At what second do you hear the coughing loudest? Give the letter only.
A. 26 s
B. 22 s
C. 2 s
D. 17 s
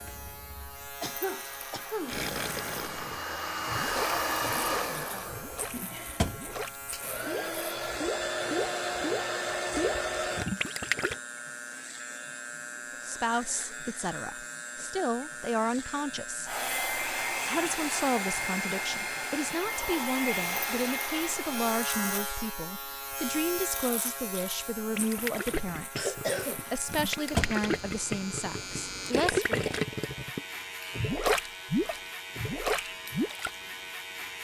A.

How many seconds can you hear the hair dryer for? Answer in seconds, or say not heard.
16 s.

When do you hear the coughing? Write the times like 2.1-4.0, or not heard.
1.0-2.2, 25.9-26.8.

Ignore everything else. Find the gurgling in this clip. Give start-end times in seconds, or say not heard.
2.0-11.2, 24.9-33.5.